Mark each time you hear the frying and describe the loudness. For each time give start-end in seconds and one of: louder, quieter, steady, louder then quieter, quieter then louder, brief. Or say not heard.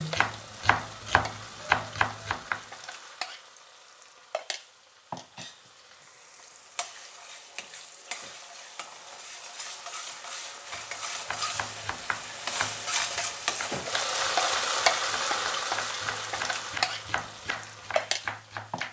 0.0-18.8 louder.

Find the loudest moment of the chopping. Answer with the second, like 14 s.
2 s.